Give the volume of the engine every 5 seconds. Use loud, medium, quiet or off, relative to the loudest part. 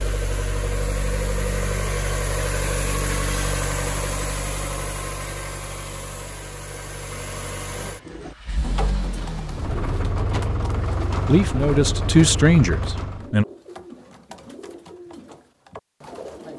loud, medium, loud, off.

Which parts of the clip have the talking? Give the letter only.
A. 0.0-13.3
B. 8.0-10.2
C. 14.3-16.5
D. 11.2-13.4
D.